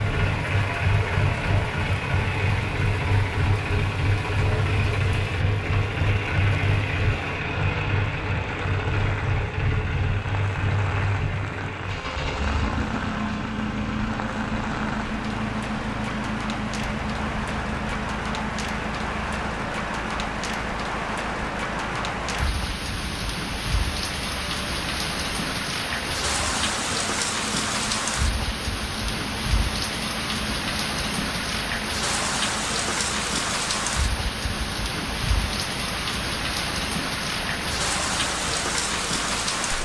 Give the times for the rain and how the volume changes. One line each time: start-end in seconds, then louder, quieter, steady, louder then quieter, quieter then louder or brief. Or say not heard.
0.0-39.7 louder.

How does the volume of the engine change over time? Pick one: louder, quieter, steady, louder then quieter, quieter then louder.
quieter.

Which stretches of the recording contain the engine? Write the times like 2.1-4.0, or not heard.
0.0-39.7.